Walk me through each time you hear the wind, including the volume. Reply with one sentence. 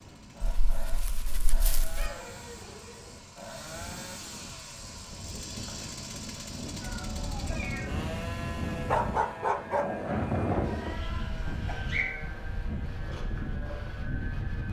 You can hear the wind from 0.0 to 14.6 s, getting louder then quieter.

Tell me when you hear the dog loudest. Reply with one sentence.
The loudest moment of the dog is at 9 seconds.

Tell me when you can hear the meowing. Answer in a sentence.
You can hear the meowing from 1.9 to 3.2 s, from 6.8 to 8.0 s and from 10.7 to 12.1 s.